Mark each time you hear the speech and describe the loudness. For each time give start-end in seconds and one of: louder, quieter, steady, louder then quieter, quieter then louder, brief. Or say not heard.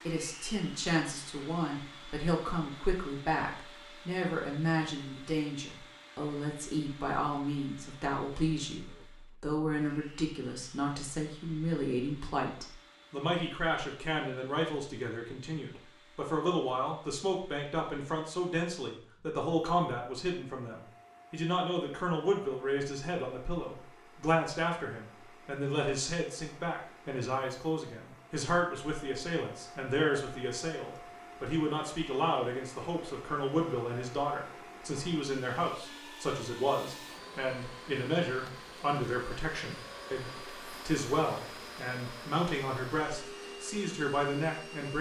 0.1-44.9 steady.